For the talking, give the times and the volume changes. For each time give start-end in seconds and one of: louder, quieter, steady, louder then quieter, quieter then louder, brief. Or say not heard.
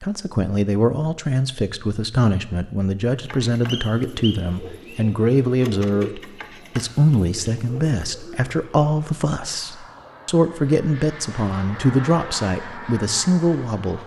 0.0-14.0 steady.